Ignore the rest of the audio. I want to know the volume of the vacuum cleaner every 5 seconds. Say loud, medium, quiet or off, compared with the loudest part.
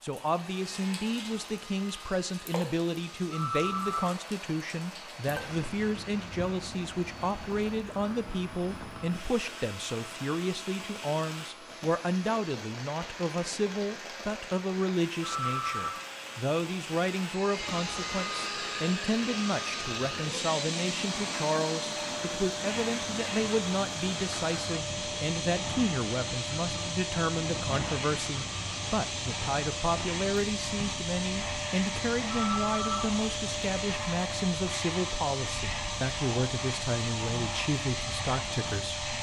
quiet, quiet, quiet, loud, loud, loud, loud, loud.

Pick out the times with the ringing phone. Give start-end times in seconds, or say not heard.
3.3-4.1, 15.2-16.0, 32.3-33.0.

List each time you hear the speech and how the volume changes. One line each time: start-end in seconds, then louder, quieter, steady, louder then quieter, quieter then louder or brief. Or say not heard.
0.0-39.0 steady.